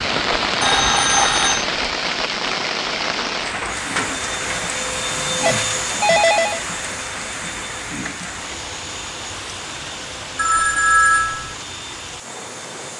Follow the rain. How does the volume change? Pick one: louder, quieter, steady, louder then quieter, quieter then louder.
quieter.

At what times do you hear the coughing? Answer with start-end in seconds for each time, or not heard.
not heard.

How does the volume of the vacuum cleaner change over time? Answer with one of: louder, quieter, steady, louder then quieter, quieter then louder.
quieter.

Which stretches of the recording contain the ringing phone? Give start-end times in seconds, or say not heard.
0.1-1.6, 5.4-6.6, 10.3-11.6.